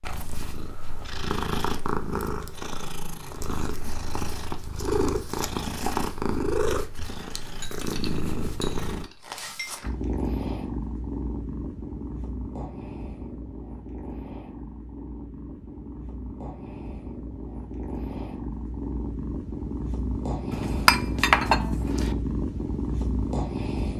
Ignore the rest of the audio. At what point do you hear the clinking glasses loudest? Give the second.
21 s.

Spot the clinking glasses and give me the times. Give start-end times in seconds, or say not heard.
7.5-9.8, 20.5-22.1.